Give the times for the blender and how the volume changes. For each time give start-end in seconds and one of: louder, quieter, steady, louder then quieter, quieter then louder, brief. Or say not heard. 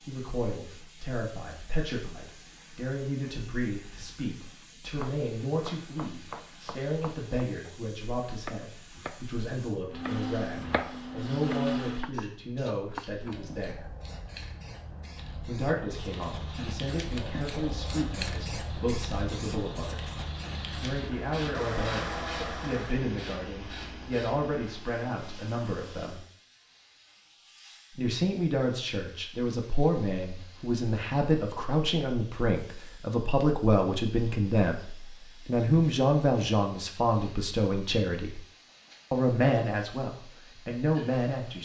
9.9-12.2 brief
15.9-26.3 louder then quieter.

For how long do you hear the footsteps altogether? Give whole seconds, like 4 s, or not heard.
not heard.